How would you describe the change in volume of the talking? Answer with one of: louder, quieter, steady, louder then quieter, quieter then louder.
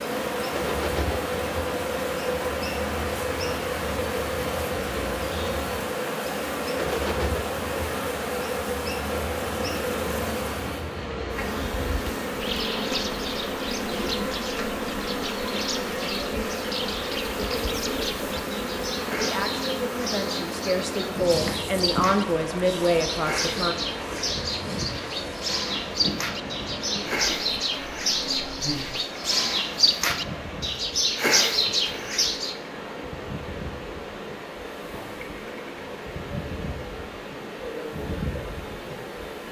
louder.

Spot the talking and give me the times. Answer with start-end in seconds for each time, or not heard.
19.1-23.8.